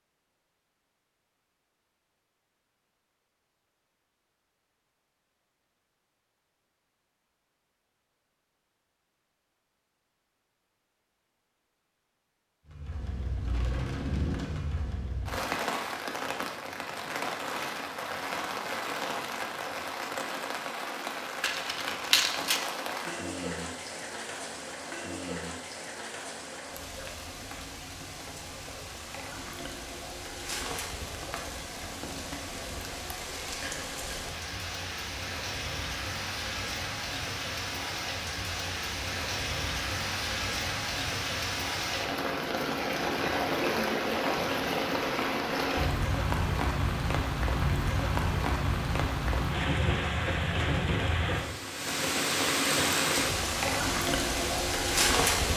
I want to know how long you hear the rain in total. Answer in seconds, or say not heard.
43 s.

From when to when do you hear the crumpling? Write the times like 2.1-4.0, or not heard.
21.4-22.6.